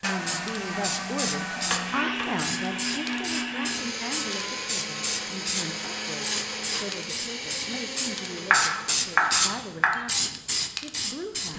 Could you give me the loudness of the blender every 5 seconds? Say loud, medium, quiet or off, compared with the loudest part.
loud, loud, off.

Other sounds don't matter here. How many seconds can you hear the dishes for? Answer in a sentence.
The dishes can't be heard in this clip.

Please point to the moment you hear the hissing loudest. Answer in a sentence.
The loudest moment of the hissing is at 9 seconds.